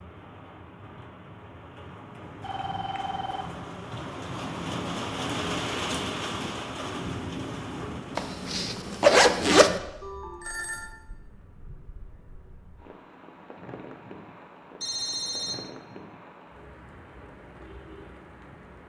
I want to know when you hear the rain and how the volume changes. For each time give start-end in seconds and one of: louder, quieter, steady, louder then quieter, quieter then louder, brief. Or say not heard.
0.0-18.8 louder then quieter.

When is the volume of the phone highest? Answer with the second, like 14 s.
15 s.